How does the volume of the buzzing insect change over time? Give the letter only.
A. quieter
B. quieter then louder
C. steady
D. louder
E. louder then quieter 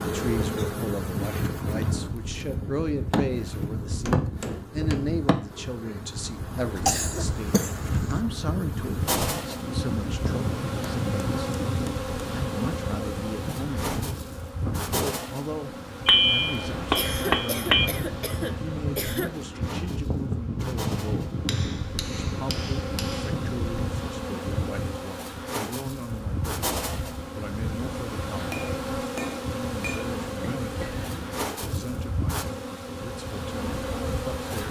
C.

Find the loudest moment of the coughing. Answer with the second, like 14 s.
7 s.